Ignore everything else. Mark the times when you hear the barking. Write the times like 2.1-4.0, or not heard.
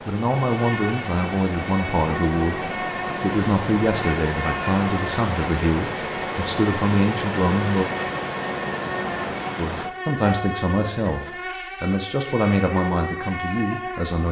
not heard.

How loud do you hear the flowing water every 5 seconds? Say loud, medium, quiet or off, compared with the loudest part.
loud, loud, off.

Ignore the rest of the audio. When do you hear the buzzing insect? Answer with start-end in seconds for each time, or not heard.
0.1-14.2.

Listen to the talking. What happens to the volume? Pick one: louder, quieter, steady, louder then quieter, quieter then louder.
steady.